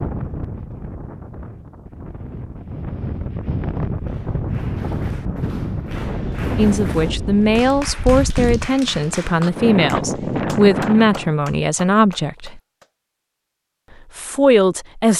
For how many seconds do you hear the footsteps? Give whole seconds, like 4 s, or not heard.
not heard.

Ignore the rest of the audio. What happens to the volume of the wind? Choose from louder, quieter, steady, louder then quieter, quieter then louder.
louder.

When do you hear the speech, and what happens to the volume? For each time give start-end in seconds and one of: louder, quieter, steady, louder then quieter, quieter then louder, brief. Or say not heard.
6.5-12.6 steady
14.2-15.1 brief.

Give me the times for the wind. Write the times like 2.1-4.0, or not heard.
0.0-11.4.